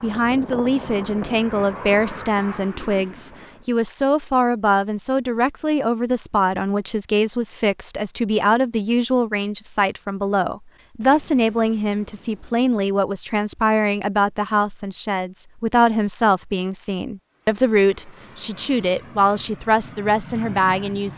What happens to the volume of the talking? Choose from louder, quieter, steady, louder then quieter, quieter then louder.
steady.